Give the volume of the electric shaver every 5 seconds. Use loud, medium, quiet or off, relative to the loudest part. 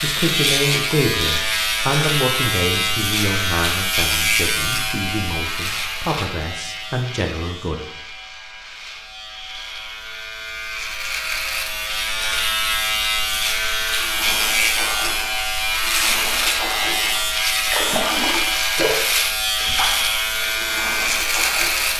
loud, medium, loud, loud, loud.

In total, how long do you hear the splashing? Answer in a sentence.
The splashing can be heard for 8 seconds in total.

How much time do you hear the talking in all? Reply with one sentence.
You can hear the talking for 8 seconds altogether.